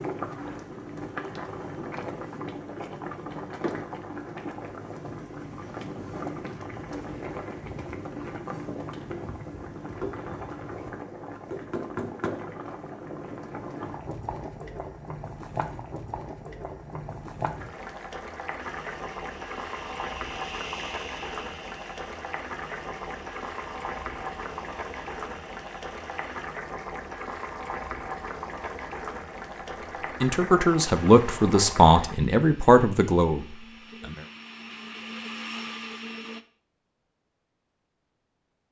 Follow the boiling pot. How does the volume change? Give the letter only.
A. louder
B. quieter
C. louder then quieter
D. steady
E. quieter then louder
D.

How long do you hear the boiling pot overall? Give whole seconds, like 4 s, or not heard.
32 s.